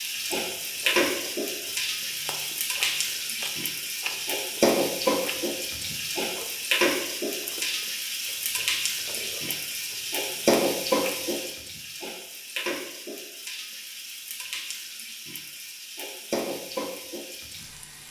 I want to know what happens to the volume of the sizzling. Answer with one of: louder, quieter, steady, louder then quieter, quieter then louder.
quieter.